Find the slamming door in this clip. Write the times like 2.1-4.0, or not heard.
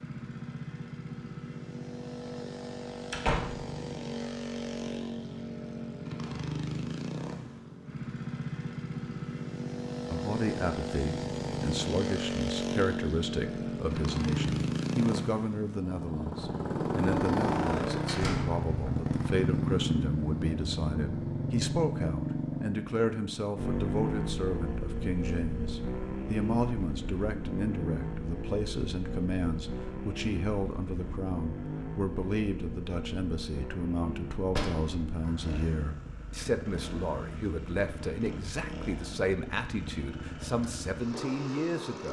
3.1-3.6, 18.1-19.1, 34.5-35.0.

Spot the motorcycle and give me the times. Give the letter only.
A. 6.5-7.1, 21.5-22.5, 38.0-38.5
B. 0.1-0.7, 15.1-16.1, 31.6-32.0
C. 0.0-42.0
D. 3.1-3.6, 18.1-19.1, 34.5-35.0
C.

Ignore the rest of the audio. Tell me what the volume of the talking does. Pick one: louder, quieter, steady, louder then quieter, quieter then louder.
steady.